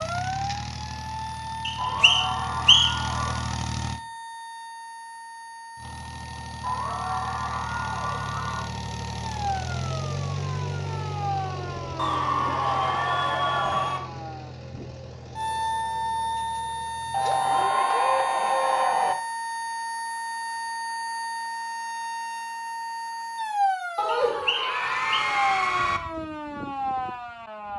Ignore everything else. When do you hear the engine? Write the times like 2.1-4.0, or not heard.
0.0-4.0, 5.8-17.7.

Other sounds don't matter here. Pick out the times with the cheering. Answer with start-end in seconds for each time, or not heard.
1.8-3.6, 6.6-8.7, 11.9-14.0, 17.1-19.1, 23.9-26.0.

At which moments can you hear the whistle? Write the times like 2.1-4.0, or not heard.
1.6-3.1, 24.2-25.2.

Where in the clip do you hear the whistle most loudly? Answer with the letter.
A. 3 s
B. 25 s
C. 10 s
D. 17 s
A.